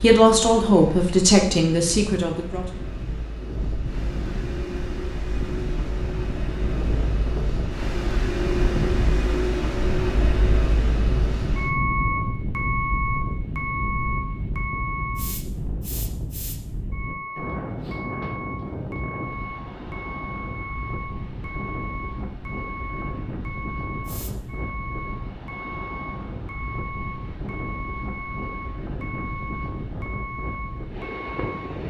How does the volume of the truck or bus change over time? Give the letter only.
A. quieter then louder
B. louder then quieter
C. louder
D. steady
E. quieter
B.